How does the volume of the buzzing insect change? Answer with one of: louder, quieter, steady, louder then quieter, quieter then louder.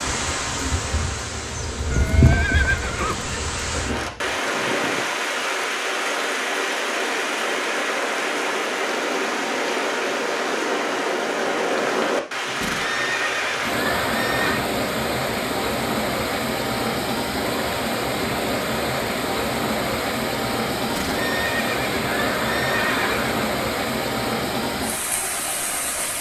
louder then quieter.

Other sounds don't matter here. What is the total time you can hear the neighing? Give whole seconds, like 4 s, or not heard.
6 s.